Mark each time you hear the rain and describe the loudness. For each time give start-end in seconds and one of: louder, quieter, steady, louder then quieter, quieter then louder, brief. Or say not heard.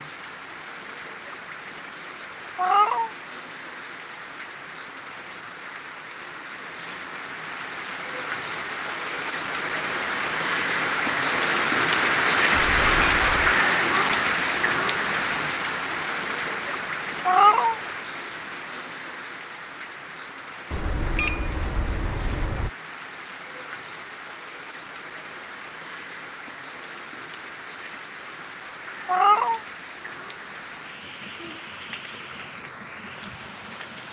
0.0-34.0 louder then quieter.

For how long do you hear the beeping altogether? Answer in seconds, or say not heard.
3 s.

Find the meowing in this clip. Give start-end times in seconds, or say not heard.
2.5-3.1, 17.2-17.8, 29.1-29.6.